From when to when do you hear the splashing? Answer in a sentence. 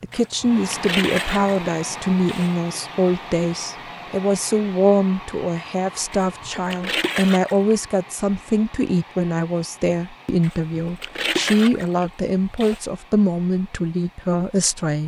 The splashing can be heard from 0.1 to 2.5 s, from 6.1 to 7.8 s and from 10.4 to 12.8 s.